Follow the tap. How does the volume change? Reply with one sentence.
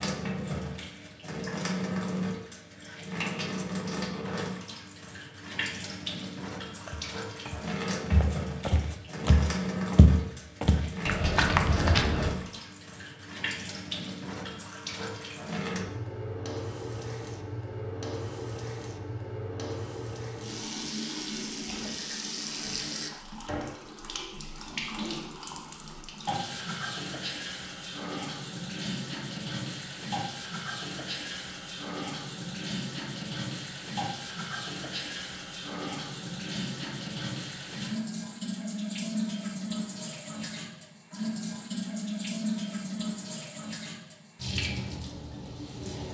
The volume of the tap stays about the same.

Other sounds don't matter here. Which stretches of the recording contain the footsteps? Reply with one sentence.
You can hear the footsteps from 6.8 to 12.3 s.